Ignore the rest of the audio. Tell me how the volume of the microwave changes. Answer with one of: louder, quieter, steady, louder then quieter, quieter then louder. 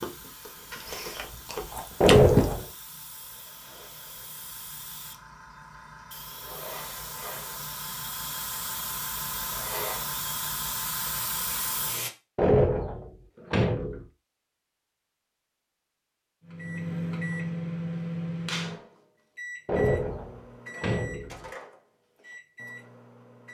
quieter.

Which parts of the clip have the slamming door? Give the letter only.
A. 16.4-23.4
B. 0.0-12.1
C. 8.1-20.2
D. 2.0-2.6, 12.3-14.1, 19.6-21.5
D.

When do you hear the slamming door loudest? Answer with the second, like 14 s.
2 s.